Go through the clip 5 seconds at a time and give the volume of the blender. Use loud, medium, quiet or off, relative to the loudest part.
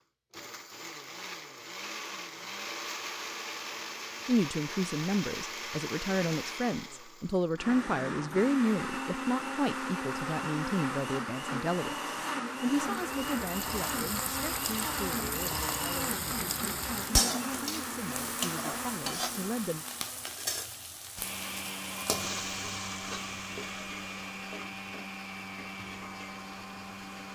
medium, loud, loud, loud, medium, medium.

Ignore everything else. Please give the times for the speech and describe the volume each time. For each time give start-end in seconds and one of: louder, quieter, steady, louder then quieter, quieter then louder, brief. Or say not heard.
4.2-19.9 quieter.